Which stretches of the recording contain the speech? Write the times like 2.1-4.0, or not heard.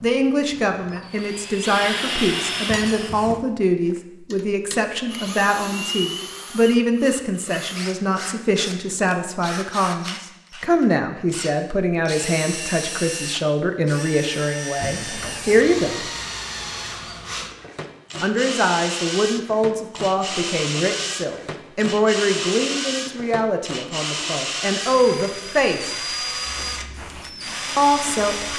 0.0-16.0, 18.2-25.9, 27.8-28.5.